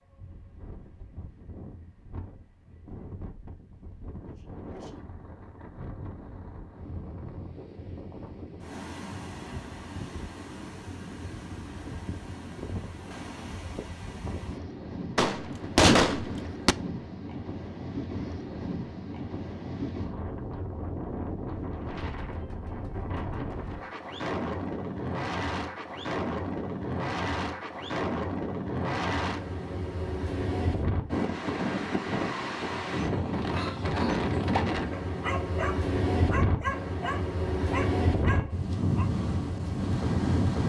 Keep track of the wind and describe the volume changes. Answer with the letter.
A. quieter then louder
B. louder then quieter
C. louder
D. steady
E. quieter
C.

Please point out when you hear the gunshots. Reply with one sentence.
You can hear the gunshots from 15.2 to 16.8 s.